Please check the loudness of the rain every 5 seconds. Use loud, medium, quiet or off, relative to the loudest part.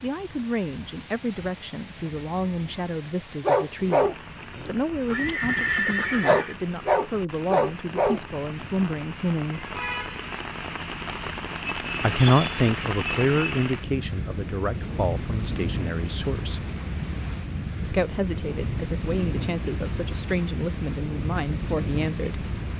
quiet, medium, loud, loud, loud.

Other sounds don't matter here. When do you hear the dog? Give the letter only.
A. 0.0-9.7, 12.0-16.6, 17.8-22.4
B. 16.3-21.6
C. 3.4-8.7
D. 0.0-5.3
C.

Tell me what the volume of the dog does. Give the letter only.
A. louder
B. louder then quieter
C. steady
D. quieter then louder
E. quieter
D.